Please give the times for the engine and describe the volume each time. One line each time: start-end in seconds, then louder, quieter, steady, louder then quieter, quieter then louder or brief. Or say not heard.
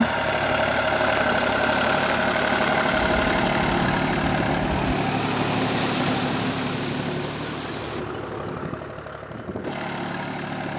0.0-10.7 quieter.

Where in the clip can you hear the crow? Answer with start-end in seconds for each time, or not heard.
not heard.